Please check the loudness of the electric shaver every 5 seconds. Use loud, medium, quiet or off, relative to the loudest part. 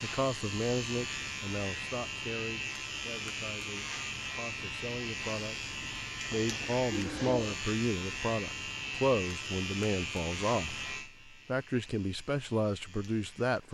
loud, loud, medium.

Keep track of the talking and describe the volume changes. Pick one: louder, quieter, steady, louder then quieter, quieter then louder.
quieter then louder.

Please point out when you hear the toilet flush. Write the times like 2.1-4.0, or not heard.
6.3-7.5.